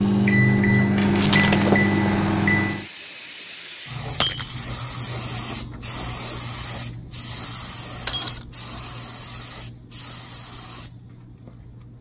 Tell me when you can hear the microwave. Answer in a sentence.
The microwave can be heard from 0.0 to 2.9 s.